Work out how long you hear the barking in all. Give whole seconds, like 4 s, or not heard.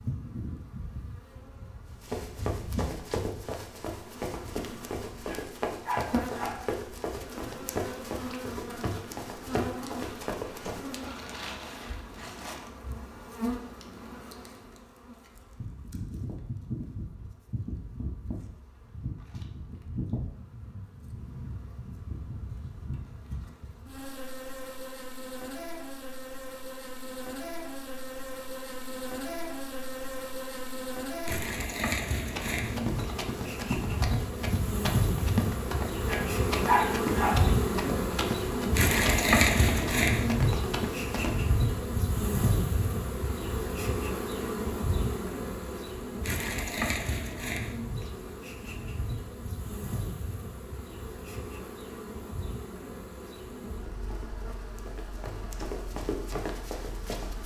3 s.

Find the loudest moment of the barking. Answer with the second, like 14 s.
37 s.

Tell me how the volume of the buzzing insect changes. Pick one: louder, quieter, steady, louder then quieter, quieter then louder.
louder then quieter.